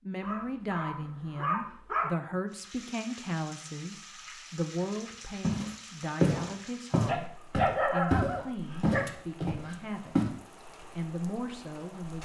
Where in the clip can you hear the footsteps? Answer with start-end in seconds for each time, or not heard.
5.4-10.2.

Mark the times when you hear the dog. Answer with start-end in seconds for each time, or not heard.
0.2-2.1, 7.0-9.1.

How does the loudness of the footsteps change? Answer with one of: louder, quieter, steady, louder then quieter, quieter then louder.
quieter.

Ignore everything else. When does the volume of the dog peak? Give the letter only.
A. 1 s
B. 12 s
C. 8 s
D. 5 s
C.